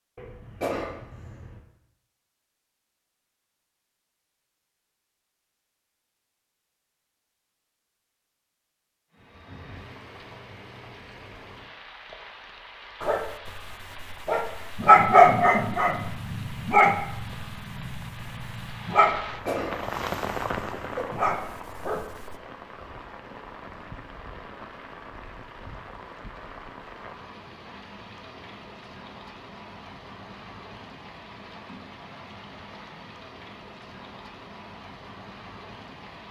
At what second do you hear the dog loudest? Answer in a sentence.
The volume of the dog peaks at 15 seconds.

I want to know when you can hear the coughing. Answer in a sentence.
You can hear the coughing from 0.1 to 1.6 s and from 19.0 to 21.1 s.